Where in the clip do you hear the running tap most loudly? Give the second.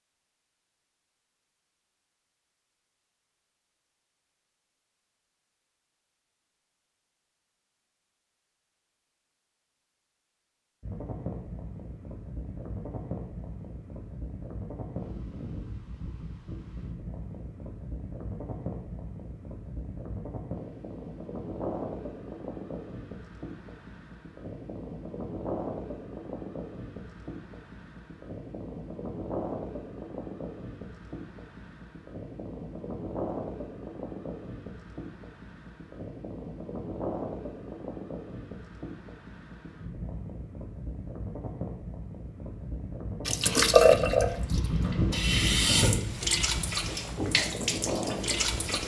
44 s.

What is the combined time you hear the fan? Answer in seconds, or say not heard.
38 s.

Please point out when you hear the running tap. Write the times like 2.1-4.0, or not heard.
43.2-48.8.